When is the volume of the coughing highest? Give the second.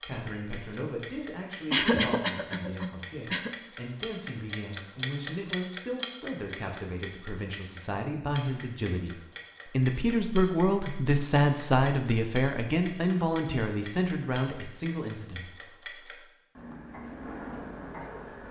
2 s.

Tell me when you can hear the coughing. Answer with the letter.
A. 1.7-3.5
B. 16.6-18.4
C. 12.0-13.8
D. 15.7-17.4
A.